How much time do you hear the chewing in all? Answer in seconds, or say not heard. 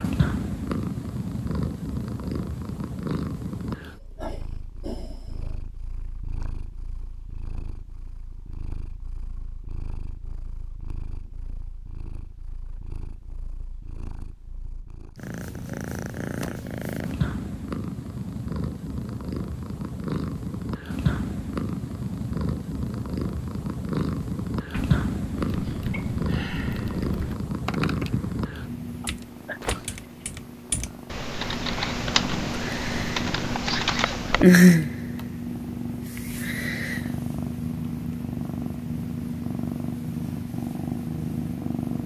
not heard.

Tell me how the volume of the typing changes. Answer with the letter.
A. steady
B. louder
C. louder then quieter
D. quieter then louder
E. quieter
B.